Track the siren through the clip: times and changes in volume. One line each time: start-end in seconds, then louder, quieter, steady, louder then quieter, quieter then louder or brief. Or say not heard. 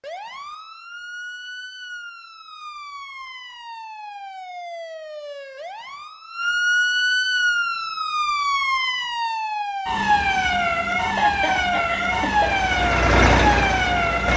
0.0-14.3 louder.